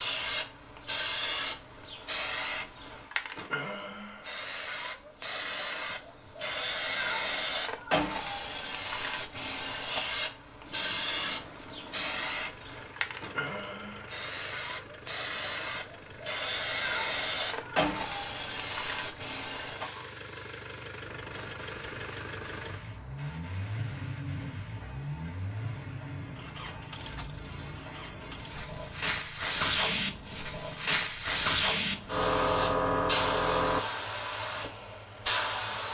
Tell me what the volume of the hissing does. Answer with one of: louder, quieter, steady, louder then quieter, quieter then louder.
quieter then louder.